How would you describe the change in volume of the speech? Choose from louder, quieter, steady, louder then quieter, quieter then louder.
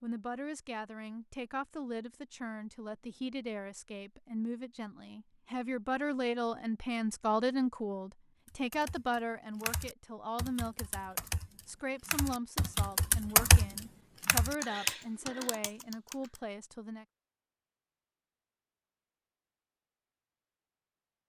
louder then quieter.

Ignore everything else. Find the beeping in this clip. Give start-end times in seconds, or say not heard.
not heard.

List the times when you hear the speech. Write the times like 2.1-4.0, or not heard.
0.0-17.1.